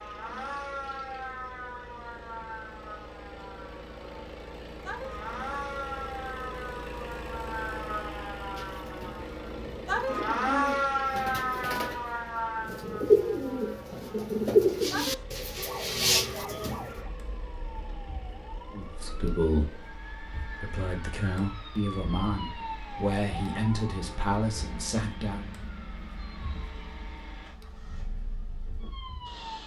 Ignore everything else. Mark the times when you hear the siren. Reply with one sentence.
The siren can be heard from 0.0 to 29.6 s.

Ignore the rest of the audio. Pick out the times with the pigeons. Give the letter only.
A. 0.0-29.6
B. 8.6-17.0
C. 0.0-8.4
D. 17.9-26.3
B.